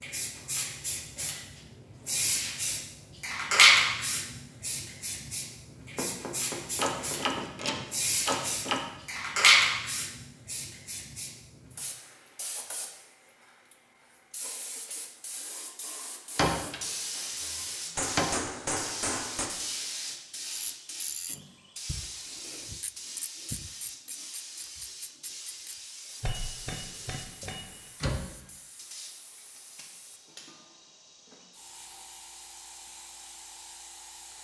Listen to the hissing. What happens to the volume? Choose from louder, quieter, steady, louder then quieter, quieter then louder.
quieter.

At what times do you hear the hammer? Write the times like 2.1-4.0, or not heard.
6.0-7.7, 17.9-19.5, 26.2-27.8.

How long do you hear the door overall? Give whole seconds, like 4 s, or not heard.
5 s.